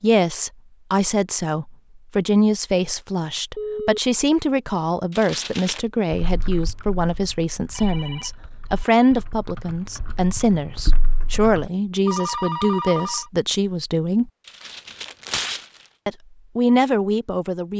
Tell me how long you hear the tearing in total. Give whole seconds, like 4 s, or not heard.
2 s.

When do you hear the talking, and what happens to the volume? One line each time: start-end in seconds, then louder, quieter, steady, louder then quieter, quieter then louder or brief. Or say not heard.
0.0-14.3 steady
16.1-17.7 brief.